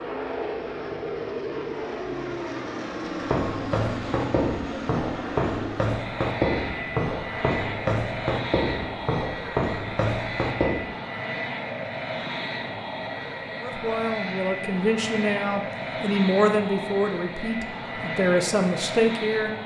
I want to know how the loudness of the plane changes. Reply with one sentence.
The volume of the plane stays about the same.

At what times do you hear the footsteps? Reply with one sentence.
You can hear the footsteps from 3.0 to 10.9 s.